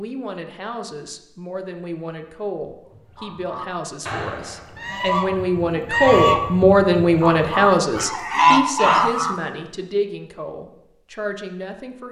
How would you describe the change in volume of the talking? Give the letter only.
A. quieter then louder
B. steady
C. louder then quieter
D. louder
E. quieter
C.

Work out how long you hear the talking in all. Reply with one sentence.
The talking can be heard for 12 seconds in total.